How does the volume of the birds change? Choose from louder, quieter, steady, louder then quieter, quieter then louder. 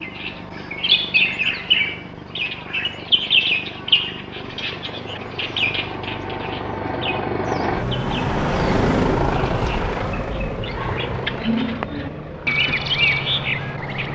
quieter then louder.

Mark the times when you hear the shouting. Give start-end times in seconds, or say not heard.
not heard.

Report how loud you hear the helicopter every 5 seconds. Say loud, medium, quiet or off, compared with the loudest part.
quiet, loud, medium.